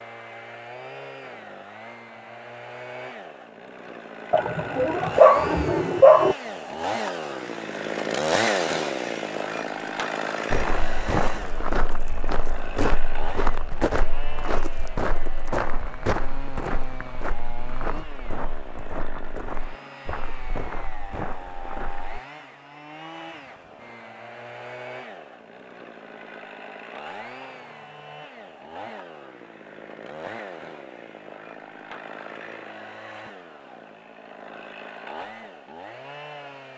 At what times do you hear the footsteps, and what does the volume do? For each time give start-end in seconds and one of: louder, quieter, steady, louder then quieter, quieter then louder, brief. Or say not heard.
10.5-22.2 quieter.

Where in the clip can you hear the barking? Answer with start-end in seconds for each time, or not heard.
4.3-6.3.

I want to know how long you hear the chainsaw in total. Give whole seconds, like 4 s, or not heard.
37 s.